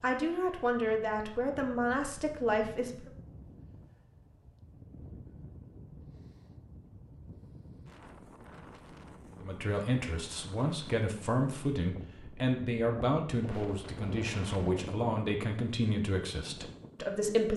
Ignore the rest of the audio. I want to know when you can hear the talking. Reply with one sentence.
The talking can be heard from 0.0 to 3.1 s and from 9.4 to 17.5 s.